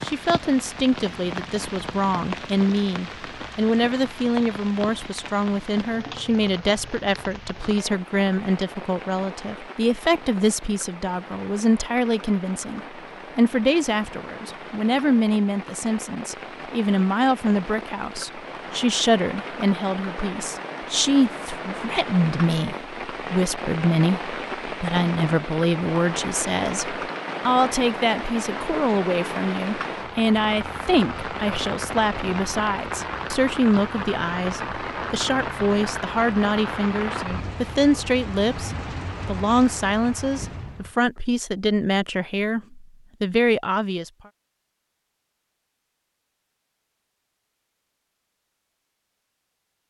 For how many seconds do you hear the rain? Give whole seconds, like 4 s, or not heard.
41 s.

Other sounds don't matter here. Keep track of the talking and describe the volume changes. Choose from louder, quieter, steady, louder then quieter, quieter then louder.
steady.